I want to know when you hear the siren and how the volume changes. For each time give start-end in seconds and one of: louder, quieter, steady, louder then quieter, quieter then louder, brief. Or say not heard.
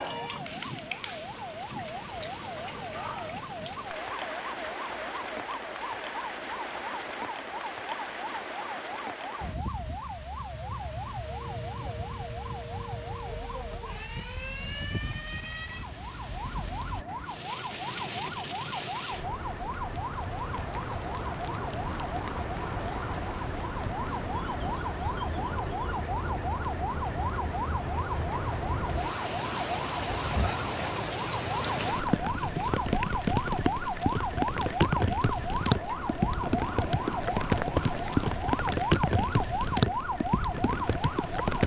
0.0-41.6 louder.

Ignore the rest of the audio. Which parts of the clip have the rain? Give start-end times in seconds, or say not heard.
0.0-41.6.